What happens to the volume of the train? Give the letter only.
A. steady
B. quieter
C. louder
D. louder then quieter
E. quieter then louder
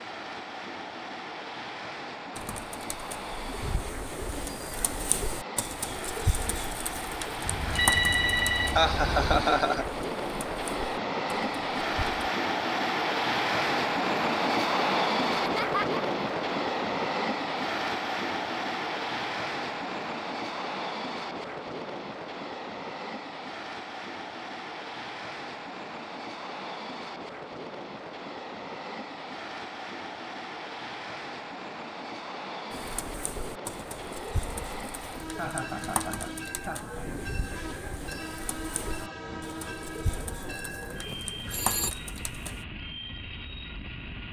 D.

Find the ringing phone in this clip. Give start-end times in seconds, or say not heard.
7.4-9.4, 41.0-42.0.